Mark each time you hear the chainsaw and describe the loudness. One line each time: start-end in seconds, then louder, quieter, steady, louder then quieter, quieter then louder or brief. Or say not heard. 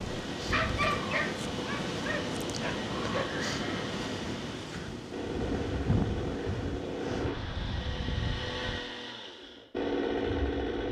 0.0-10.8 louder.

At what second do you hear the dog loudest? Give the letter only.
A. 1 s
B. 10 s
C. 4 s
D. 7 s
A.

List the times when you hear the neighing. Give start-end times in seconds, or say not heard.
3.2-4.0.